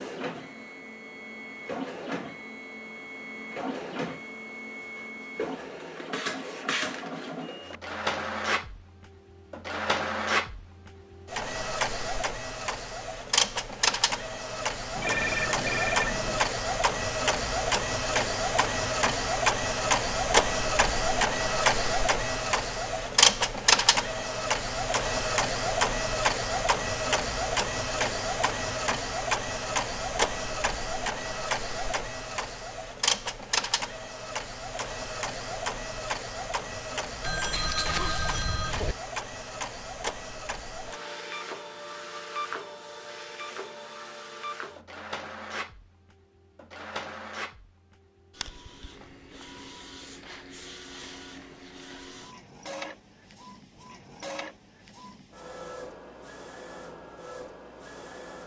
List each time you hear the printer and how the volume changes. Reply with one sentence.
The printer can be heard from 0.0 to 58.4 s, getting louder then quieter.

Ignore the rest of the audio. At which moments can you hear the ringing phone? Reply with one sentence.
The ringing phone can be heard from 14.9 to 16.4 s and from 37.2 to 39.0 s.